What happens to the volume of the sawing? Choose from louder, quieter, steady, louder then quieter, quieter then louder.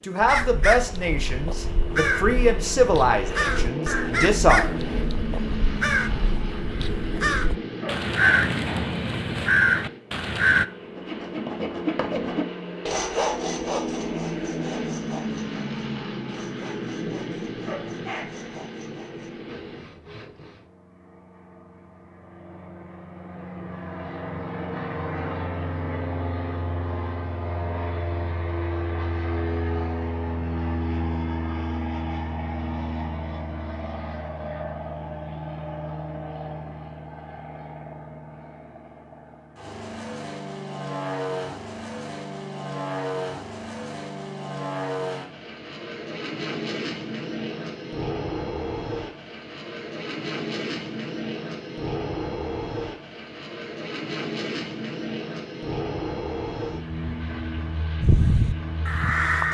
quieter.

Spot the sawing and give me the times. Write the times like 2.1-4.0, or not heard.
10.8-20.7.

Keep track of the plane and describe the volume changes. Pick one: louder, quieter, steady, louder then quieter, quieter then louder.
steady.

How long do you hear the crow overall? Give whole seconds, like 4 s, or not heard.
12 s.